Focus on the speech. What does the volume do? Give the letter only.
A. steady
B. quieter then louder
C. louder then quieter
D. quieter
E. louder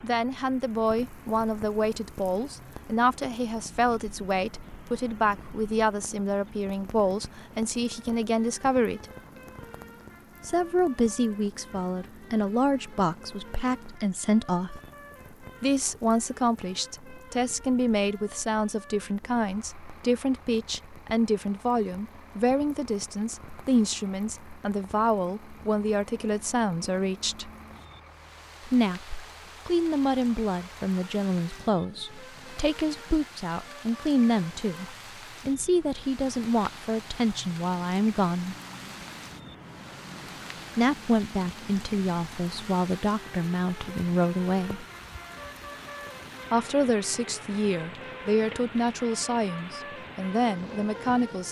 A.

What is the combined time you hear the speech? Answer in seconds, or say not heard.
44 s.